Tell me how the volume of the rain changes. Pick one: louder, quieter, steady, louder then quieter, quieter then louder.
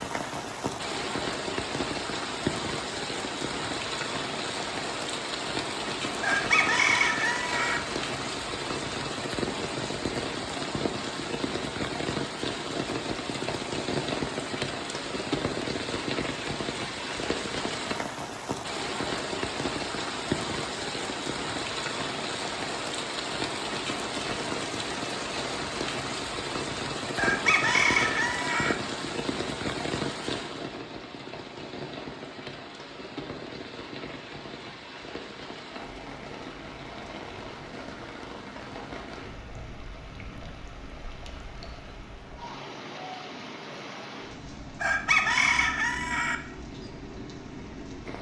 quieter.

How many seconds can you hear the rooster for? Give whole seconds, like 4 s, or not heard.
5 s.